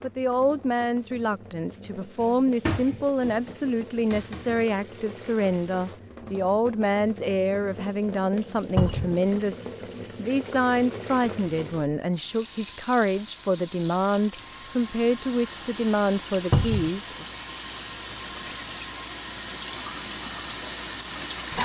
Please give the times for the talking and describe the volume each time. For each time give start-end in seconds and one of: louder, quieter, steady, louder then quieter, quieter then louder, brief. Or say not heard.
0.0-17.2 steady.